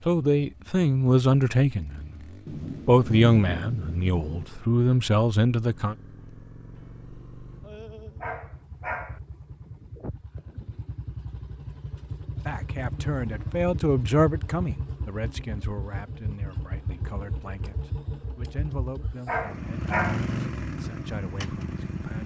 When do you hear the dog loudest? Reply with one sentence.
The loudest moment of the dog is at 20 seconds.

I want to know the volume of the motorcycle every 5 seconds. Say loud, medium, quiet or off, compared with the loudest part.
quiet, quiet, medium, medium, loud.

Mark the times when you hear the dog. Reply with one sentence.
The dog can be heard from 8.2 to 9.2 s and from 19.2 to 20.2 s.